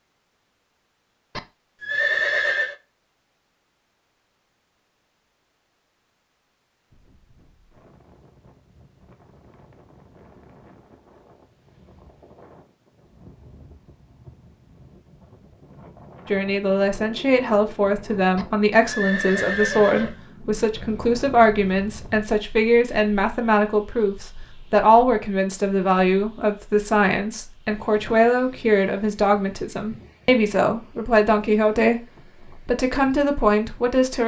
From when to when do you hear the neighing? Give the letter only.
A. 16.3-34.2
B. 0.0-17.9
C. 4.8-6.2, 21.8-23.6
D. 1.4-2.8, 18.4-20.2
D.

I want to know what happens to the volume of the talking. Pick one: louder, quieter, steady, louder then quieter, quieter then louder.
steady.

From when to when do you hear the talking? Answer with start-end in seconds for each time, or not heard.
16.3-34.2.